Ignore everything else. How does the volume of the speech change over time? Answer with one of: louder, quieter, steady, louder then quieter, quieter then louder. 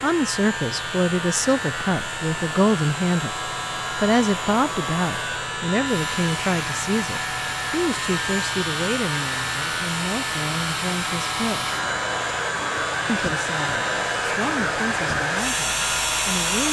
quieter.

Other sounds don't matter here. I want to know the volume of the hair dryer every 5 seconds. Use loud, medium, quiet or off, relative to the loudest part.
quiet, medium, loud, loud.